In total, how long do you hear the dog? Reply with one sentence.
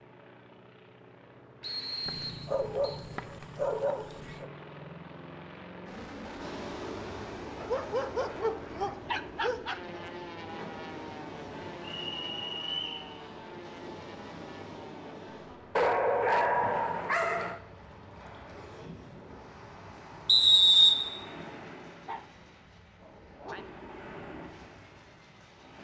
You can hear the dog for 8 seconds altogether.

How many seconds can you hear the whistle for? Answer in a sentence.
You can hear the whistle for 3 seconds altogether.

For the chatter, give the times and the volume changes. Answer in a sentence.
The chatter can't be heard in this clip.